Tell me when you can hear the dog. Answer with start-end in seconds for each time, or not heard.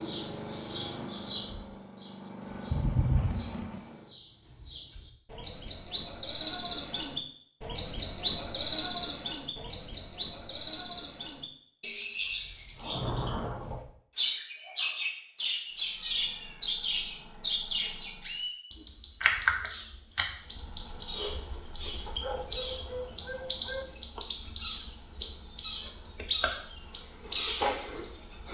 22.1-23.9.